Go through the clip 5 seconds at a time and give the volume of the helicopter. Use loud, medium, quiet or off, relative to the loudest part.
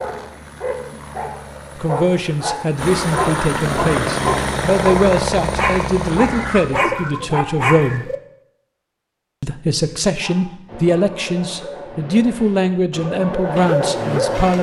loud, loud, off.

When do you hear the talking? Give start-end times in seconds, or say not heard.
1.8-8.1, 9.4-14.5.